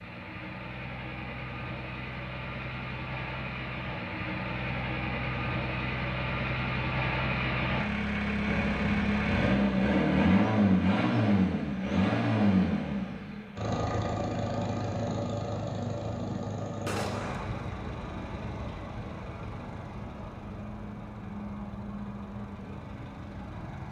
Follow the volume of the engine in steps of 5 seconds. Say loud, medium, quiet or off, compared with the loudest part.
medium, loud, loud, medium, quiet.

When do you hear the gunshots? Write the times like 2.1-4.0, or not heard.
16.9-17.6.